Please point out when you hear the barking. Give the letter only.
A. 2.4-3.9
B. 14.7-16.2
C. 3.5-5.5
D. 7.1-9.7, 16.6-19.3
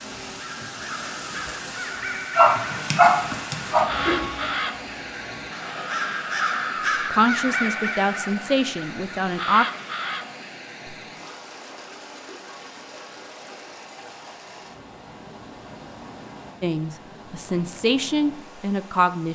A.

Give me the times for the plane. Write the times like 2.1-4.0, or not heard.
3.5-5.5.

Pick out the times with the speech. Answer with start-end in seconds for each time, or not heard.
7.1-9.7, 16.6-19.3.